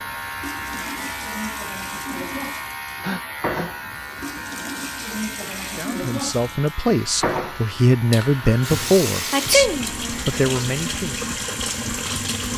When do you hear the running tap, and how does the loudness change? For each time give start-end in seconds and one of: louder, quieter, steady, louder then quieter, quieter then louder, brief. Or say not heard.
0.0-12.5 louder.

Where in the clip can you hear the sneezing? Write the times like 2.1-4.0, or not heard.
3.0-3.7, 9.3-9.9.